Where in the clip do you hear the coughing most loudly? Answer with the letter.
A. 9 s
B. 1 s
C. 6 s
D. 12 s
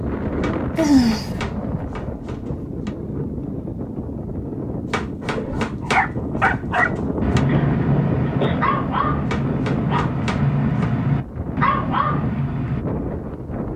B.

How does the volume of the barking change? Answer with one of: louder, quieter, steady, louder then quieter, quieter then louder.
steady.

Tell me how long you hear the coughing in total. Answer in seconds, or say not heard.
2 s.